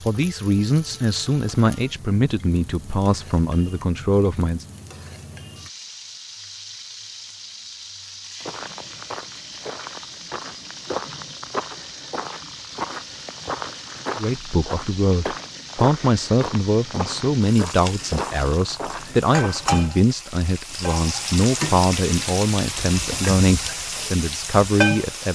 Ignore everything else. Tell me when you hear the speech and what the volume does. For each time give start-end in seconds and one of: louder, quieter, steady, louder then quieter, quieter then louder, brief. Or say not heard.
0.1-4.7 steady
14.2-25.3 steady.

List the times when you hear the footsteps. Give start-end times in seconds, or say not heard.
8.4-19.9.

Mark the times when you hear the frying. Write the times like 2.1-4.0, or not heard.
0.0-25.3.